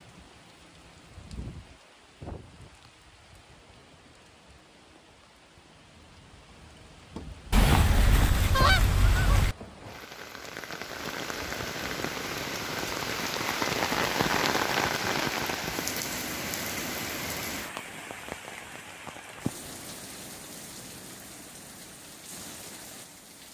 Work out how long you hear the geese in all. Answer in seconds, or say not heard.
2 s.